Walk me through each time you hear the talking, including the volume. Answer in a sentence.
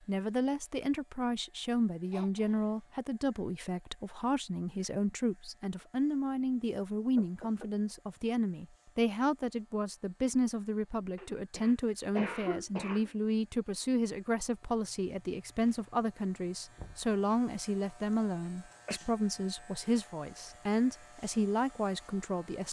You can hear the talking from 0.1 to 22.6 s, at a steady volume.